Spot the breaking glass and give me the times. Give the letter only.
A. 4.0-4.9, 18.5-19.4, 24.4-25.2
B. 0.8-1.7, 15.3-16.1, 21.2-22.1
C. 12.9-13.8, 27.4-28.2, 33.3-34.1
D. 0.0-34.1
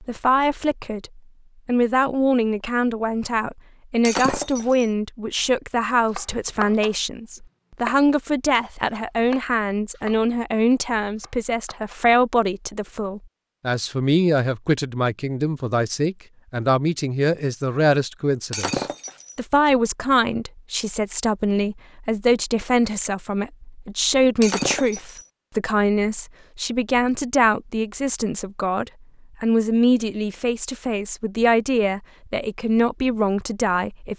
A.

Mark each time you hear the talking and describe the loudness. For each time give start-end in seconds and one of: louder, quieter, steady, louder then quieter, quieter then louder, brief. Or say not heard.
0.0-34.1 steady.